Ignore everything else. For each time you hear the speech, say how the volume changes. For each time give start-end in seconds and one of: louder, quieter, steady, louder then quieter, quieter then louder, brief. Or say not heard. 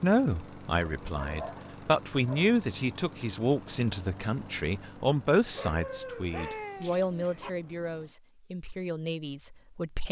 0.0-10.0 quieter.